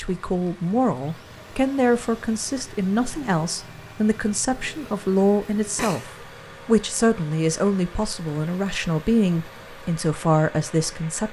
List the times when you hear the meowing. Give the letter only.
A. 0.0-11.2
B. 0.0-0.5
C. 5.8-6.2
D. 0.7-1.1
C.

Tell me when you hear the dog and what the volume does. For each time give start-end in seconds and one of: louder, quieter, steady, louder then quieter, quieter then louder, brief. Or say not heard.
not heard.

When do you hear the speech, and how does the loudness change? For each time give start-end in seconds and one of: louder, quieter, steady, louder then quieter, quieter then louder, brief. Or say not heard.
0.0-11.2 steady.